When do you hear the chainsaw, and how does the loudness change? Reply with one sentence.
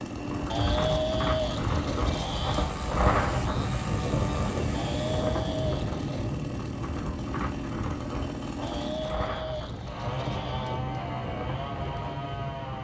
You can hear the chainsaw from 0.0 to 12.7 s, at a steady volume.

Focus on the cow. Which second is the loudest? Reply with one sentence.
The loudest moment of the cow is at 1 second.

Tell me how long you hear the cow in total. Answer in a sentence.
You can hear the cow for 6 seconds altogether.